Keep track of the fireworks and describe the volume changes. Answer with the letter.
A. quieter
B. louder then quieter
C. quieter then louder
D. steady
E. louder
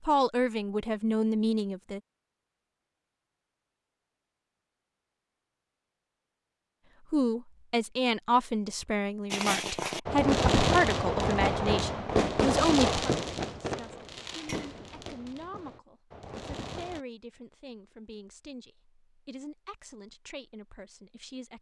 A.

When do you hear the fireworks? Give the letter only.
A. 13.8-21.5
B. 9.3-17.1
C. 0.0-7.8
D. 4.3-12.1
B.